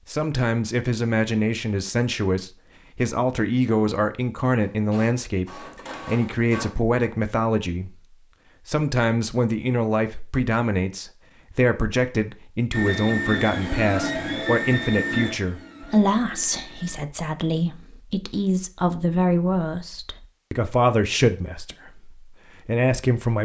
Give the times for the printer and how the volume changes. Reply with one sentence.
You can hear the printer briefly from 4.7 to 7.1 s; and from 12.7 to 17.0 s, getting quieter.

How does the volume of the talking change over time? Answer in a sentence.
The volume of the talking stays about the same.